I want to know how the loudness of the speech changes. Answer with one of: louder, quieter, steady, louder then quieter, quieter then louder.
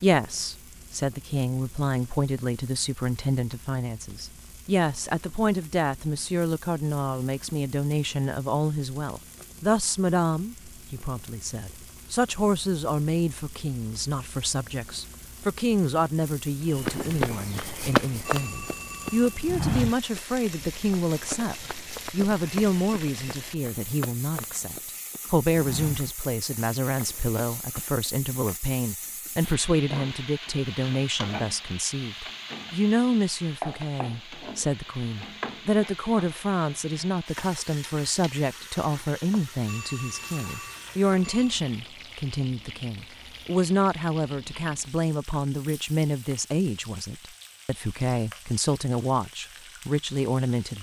steady.